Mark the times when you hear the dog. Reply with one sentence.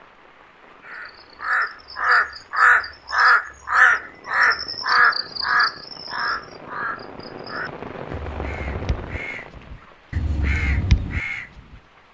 The dog can't be heard in this clip.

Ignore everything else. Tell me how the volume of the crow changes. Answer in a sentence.
The loudness of the crow goes down, then up.